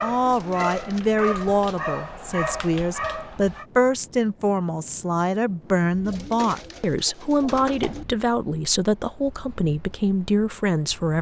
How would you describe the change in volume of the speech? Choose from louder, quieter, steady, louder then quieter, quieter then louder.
steady.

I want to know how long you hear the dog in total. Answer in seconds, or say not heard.
4 s.